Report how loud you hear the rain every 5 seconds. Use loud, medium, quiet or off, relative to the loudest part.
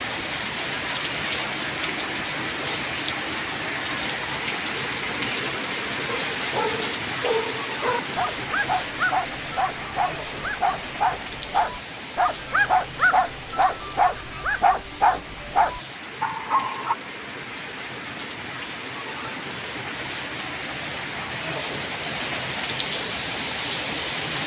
loud, loud, medium, medium, loud.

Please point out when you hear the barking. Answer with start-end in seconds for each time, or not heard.
6.0-16.9.